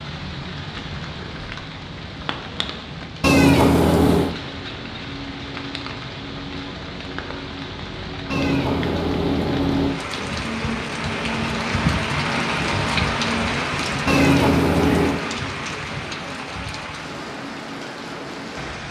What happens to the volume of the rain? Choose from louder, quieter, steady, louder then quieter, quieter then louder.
louder then quieter.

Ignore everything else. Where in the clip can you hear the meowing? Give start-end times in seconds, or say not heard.
3.2-4.3, 8.3-9.9, 14.1-15.2.